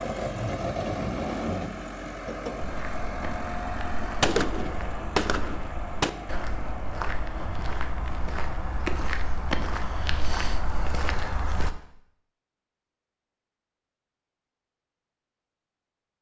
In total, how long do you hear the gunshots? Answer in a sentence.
You can hear the gunshots for 2 seconds altogether.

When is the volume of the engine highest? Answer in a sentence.
The volume of the engine peaks at 1 second.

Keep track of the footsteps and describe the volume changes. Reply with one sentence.
The volume of the footsteps goes up.